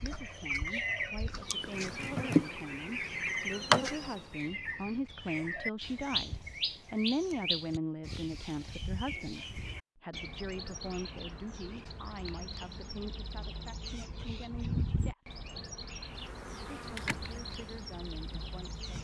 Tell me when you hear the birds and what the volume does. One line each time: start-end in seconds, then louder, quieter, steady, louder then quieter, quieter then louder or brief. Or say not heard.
0.0-18.9 quieter.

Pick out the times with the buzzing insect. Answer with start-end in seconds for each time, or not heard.
1.6-4.2, 16.2-18.9.